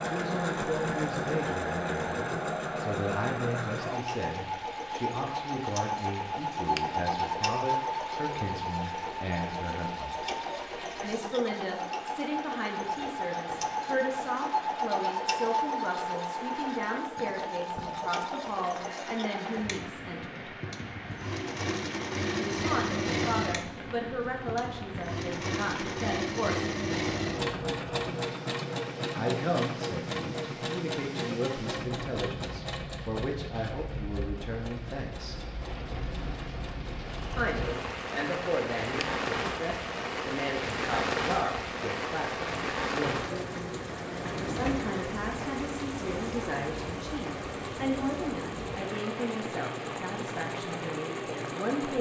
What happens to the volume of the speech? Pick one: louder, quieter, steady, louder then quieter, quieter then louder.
steady.